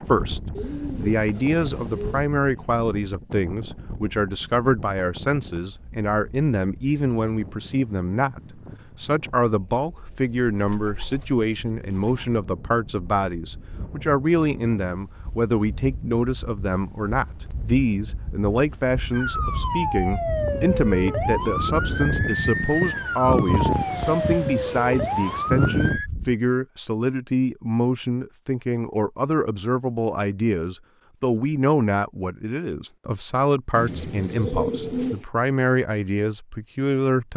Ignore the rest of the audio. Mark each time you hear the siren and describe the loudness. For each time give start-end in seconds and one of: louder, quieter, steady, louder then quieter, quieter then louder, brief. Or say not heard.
19.1-26.1 steady.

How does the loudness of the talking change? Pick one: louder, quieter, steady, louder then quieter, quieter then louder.
steady.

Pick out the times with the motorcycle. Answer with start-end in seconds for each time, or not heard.
not heard.